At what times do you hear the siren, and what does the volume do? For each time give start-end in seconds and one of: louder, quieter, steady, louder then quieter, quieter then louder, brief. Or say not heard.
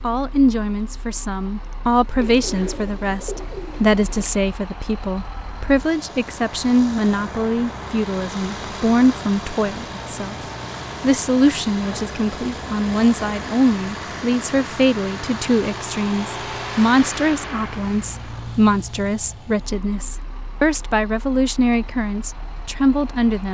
not heard.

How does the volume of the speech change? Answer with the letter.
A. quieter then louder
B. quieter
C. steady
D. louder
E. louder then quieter
C.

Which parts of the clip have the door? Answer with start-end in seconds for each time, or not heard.
not heard.